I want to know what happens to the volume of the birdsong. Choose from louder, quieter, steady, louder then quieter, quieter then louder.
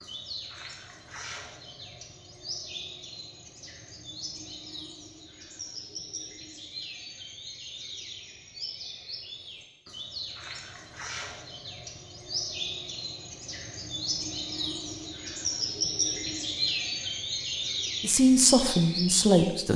louder.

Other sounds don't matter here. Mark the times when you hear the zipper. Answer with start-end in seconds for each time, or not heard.
not heard.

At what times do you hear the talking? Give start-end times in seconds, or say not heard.
18.0-19.7.